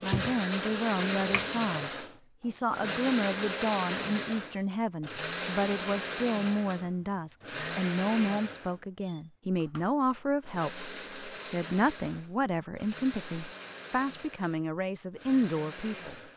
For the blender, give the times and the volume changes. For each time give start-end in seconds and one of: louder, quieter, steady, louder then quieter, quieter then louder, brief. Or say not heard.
0.0-16.3 quieter.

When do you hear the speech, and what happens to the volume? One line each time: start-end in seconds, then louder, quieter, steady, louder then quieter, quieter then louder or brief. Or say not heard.
0.0-16.1 steady.